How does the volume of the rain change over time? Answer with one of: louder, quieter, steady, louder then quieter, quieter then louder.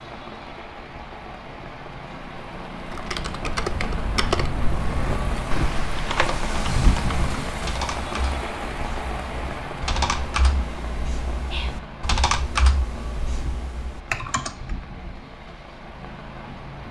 louder then quieter.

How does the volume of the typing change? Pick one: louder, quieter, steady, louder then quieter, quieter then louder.
steady.